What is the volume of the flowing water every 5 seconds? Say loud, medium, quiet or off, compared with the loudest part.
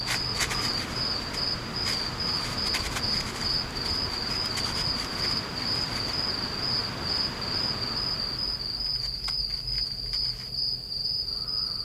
loud, loud, off.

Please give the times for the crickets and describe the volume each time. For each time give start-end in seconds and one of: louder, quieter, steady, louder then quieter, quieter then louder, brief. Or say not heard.
0.0-11.7 steady.